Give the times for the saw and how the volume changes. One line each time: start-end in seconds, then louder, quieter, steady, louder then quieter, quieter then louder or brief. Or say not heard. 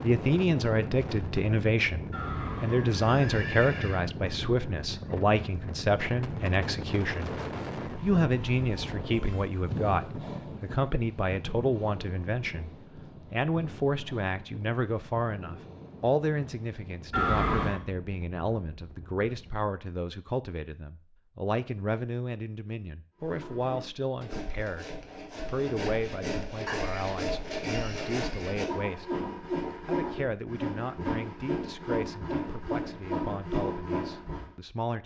23.2-34.5 louder.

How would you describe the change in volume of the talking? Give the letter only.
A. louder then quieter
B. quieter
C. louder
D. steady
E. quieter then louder
B.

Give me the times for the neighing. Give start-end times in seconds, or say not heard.
2.1-4.0, 17.1-17.8, 26.6-28.6.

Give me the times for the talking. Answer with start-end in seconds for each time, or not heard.
0.0-7.3, 8.0-29.1, 29.9-35.0.